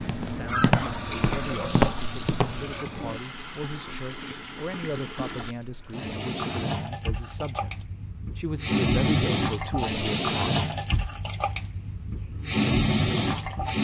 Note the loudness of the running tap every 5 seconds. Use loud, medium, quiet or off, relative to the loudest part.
medium, loud, loud.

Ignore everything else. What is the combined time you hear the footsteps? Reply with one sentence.
You can hear the footsteps for 3 seconds altogether.